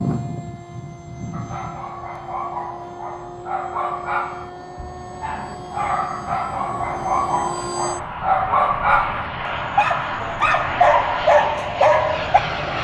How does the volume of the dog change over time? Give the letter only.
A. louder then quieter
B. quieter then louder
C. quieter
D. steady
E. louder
E.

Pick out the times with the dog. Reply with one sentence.
You can hear the dog from 1.3 to 12.4 s.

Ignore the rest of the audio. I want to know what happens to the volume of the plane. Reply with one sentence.
The loudness of the plane goes up.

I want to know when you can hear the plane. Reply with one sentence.
The plane can be heard from 0.0 to 12.7 s.